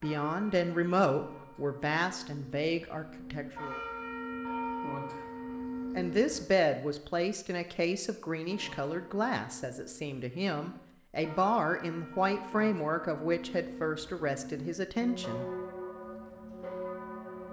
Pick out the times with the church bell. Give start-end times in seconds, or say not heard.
0.0-6.5, 8.4-17.4.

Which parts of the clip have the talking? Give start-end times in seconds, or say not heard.
0.0-3.8, 6.0-15.4.